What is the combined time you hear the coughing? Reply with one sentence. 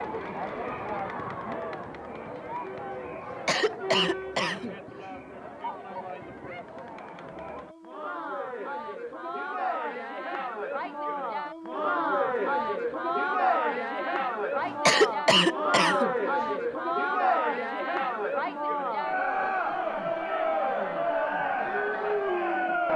You can hear the coughing for 4 seconds altogether.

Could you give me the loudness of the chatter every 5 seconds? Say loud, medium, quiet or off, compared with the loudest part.
medium, medium, loud, loud, loud.